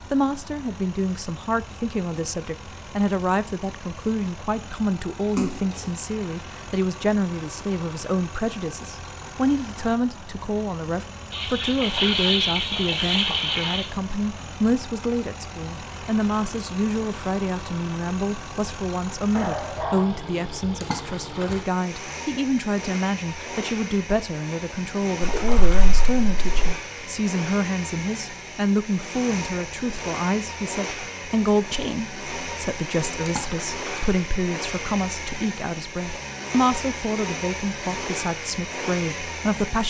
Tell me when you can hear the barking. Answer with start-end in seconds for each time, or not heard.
19.3-20.2.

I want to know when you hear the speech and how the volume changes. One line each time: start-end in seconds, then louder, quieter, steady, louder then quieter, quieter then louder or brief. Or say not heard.
0.1-39.8 steady.